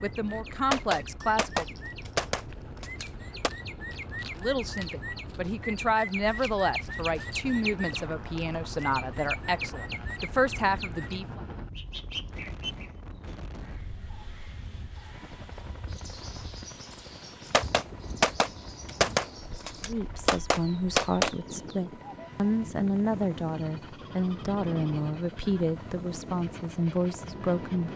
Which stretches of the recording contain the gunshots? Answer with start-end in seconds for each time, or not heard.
0.7-3.5, 17.5-21.3.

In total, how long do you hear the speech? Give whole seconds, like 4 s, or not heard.
17 s.